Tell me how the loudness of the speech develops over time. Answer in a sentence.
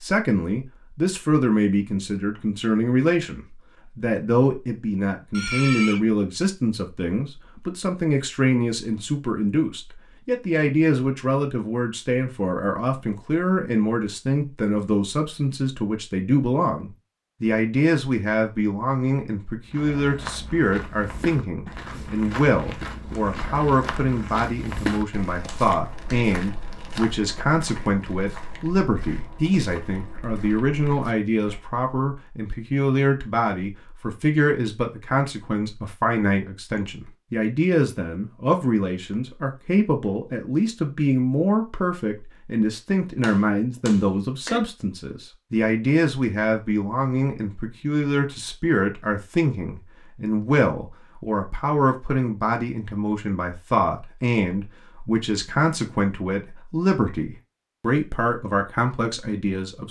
The loudness of the speech stays about the same.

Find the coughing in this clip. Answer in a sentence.
The coughing can be heard from 5.3 to 6.0 s.